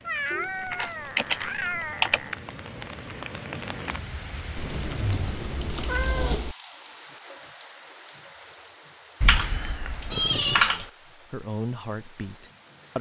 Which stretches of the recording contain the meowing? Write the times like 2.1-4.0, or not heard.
0.0-2.4, 4.5-6.5, 10.1-10.7.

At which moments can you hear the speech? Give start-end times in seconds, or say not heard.
10.6-12.9.